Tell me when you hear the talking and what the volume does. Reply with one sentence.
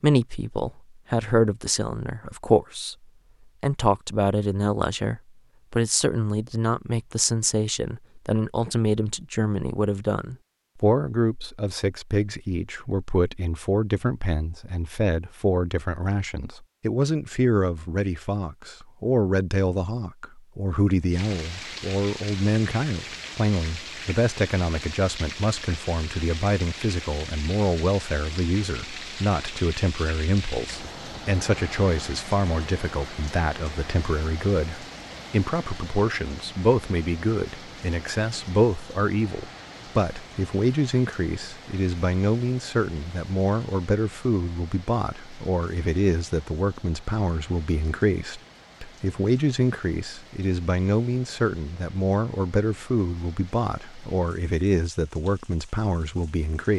The talking can be heard briefly from 0.0 to 3.0 s; and from 3.6 to 56.7 s, at a steady volume.